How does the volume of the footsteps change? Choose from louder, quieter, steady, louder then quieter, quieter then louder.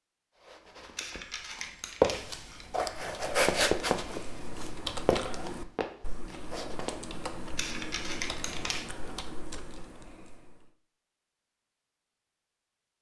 louder then quieter.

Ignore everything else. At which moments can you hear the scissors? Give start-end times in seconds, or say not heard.
0.9-2.6, 7.5-8.8.